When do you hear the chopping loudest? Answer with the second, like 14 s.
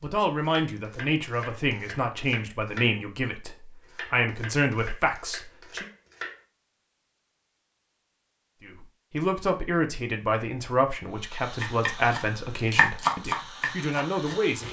13 s.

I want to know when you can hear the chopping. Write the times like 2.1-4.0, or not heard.
0.0-6.4, 11.6-14.4.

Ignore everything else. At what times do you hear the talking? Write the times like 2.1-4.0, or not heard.
0.0-5.9, 8.6-14.6.